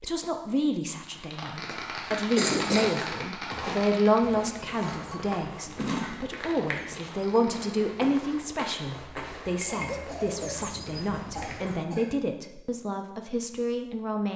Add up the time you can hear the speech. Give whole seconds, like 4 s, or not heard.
14 s.